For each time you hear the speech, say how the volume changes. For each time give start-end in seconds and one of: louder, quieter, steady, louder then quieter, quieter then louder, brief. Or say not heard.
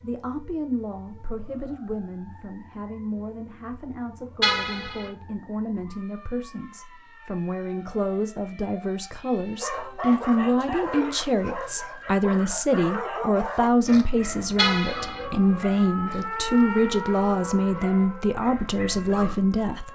0.0-19.9 louder.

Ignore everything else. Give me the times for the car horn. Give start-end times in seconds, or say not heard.
4.4-5.1, 14.6-15.2.